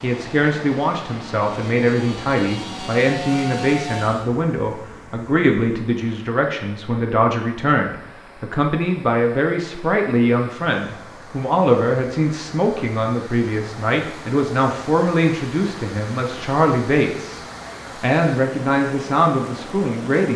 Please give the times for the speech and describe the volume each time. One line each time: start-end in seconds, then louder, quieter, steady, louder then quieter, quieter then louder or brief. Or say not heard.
0.0-17.4 steady
18.0-20.3 brief.